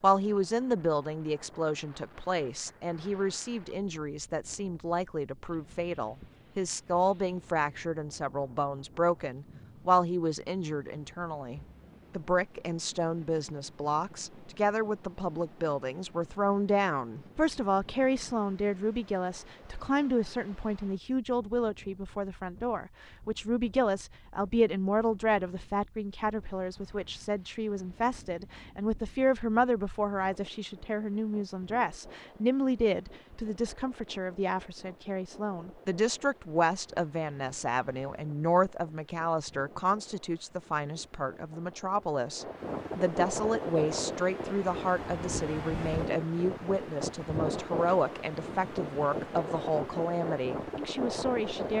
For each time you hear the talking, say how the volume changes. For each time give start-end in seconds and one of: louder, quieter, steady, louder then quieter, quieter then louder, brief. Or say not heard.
0.0-51.7 steady.